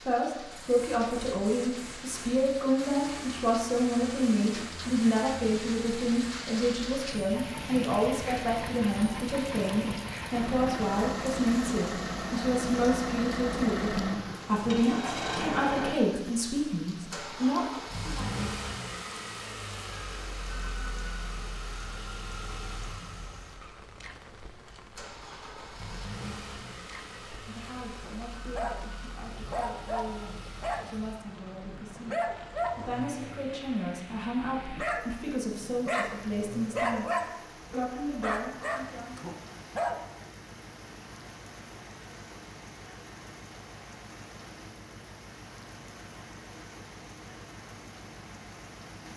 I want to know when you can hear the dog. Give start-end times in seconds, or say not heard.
28.0-40.0.